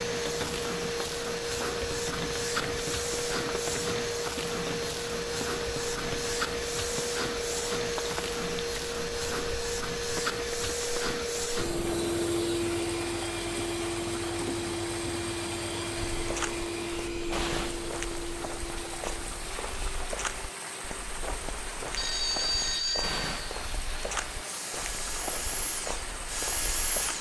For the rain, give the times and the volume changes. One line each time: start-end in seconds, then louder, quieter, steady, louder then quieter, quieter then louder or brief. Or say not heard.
0.0-27.1 steady.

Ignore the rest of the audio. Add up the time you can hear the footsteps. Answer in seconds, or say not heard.
11 s.